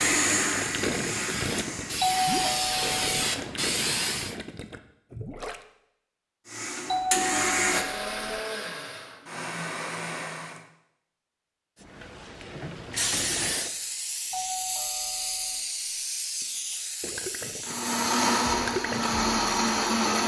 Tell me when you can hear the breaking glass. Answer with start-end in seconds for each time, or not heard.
not heard.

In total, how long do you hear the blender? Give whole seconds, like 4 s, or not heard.
9 s.